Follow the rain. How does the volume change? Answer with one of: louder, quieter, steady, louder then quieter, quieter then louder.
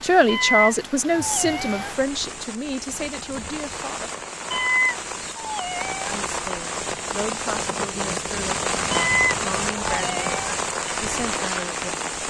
louder.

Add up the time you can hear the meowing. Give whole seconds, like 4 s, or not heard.
5 s.